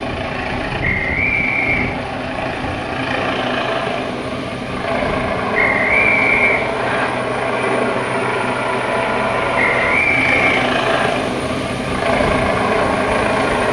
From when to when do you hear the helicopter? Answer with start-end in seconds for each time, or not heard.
0.0-13.6.